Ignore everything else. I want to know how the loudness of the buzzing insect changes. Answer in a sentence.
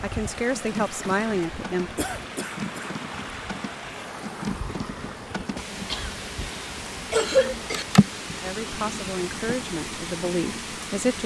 The volume of the buzzing insect goes up, then down.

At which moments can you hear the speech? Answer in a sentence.
The speech can be heard from 0.0 to 1.9 s and from 8.4 to 11.2 s.